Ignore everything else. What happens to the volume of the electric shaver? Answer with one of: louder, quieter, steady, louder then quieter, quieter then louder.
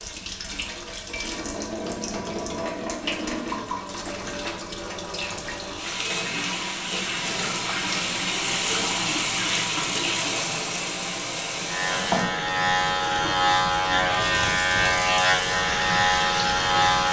steady.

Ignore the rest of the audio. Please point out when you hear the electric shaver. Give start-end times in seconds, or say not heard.
11.7-17.0.